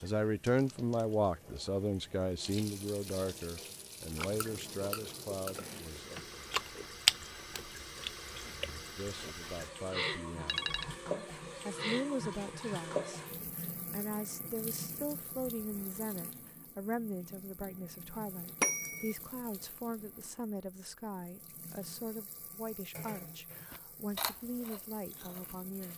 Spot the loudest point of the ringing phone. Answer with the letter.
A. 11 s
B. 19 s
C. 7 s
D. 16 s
B.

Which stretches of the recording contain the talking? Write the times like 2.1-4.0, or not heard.
0.0-6.2, 8.3-25.9.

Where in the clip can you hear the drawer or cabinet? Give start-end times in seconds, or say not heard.
5.5-6.2.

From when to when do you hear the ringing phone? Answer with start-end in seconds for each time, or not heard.
10.4-10.9, 18.6-19.1.